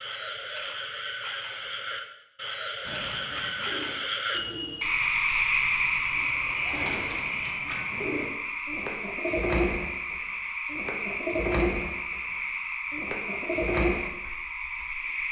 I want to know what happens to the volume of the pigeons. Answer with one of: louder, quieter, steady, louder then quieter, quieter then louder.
louder.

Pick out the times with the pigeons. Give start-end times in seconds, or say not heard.
2.9-14.0.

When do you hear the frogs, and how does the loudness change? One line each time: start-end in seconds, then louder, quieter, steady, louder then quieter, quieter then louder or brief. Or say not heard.
0.0-15.2 louder then quieter.